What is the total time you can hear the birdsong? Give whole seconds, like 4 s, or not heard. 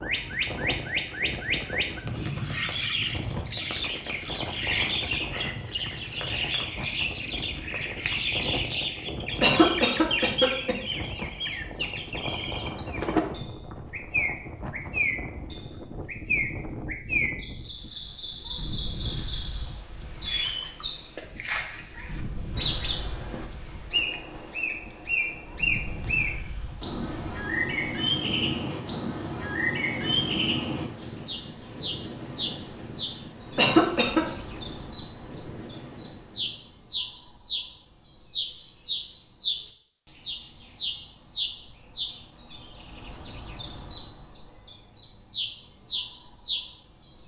47 s.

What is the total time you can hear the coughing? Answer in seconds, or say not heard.
2 s.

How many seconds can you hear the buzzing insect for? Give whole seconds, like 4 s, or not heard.
not heard.